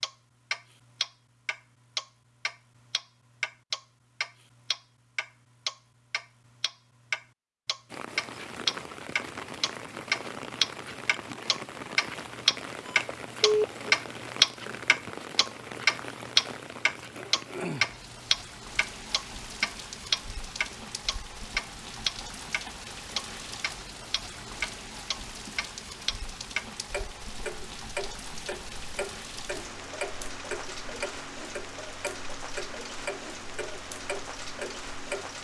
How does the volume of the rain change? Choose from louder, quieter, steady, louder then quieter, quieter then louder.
steady.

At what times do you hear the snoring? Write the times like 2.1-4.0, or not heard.
not heard.